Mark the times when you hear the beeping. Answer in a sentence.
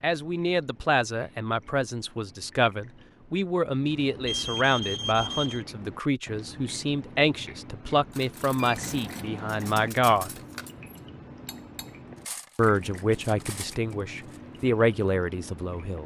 The beeping can be heard from 4.2 to 5.7 s and from 8.6 to 9.9 s.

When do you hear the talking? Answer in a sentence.
You can hear the talking from 0.0 to 10.3 s and from 12.6 to 16.0 s.